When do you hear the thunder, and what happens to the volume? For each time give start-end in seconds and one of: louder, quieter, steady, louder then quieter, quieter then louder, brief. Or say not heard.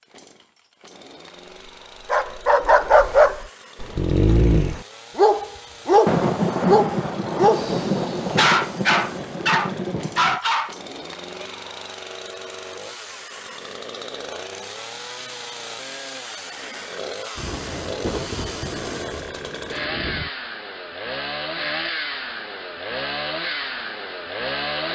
6.0-10.4 quieter
17.4-20.3 brief.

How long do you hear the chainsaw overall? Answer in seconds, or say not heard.
25 s.